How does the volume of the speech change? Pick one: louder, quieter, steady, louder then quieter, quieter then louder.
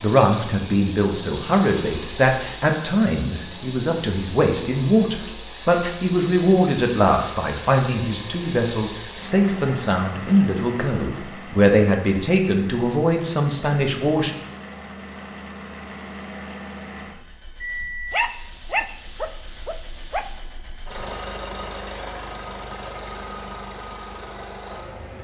steady.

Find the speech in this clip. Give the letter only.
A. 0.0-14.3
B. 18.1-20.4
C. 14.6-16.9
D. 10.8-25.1
A.